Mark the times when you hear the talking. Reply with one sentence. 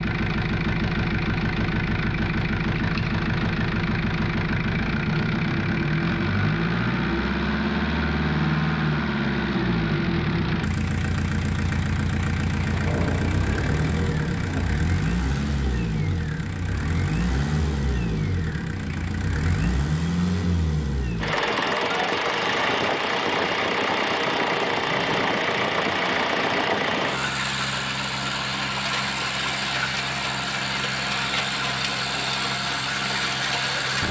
The talking can't be heard in this clip.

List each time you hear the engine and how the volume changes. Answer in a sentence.
You can hear the engine from 0.0 to 34.0 s, at a steady volume.